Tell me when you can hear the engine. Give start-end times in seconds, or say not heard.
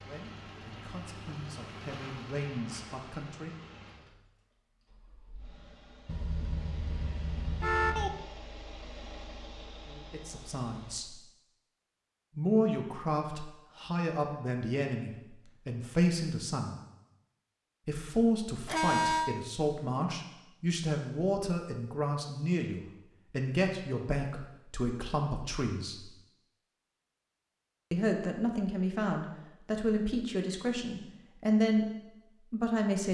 0.0-11.0.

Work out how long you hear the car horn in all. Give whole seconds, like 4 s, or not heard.
3 s.